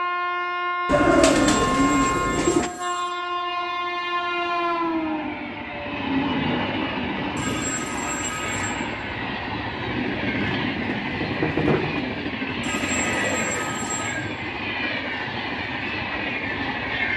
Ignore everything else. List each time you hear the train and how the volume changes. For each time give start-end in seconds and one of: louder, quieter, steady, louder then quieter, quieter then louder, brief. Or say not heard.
0.0-17.1 steady.